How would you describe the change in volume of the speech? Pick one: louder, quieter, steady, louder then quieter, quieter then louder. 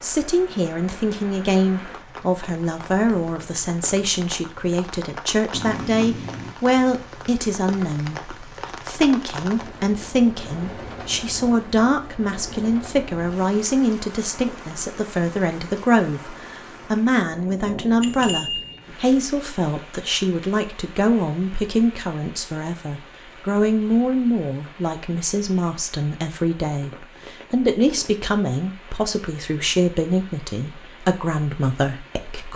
steady.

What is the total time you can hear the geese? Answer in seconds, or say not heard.
not heard.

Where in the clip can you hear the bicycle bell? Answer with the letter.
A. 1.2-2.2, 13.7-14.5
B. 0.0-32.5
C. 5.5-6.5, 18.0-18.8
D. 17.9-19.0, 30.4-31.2
C.